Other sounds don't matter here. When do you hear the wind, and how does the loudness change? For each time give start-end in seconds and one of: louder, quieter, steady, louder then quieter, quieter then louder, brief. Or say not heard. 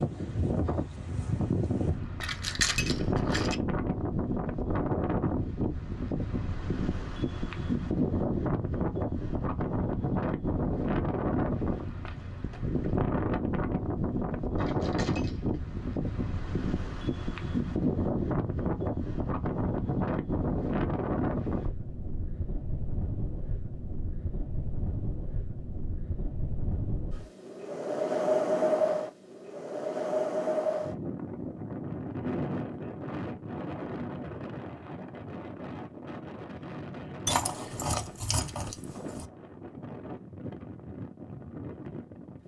0.0-42.4 quieter.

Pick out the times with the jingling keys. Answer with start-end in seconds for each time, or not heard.
2.2-3.5, 14.6-15.6, 37.2-39.2.